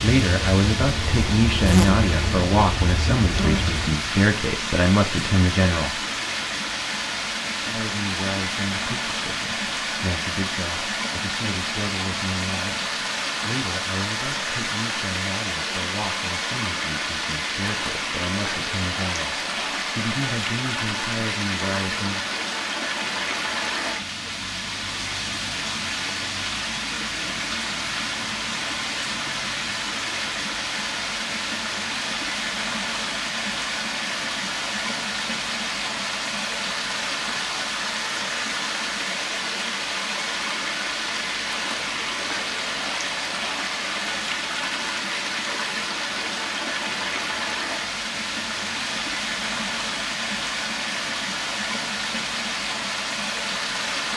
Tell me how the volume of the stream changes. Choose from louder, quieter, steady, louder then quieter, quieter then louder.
steady.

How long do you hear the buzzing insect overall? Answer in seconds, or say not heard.
4 s.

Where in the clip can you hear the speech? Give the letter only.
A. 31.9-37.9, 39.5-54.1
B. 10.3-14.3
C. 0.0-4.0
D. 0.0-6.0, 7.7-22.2
D.